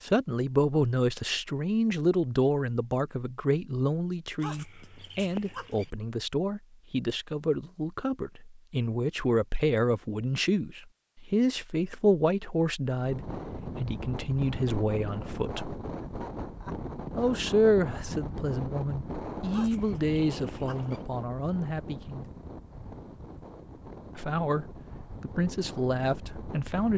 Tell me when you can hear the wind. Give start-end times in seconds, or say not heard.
13.0-26.9.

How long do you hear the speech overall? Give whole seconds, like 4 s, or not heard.
24 s.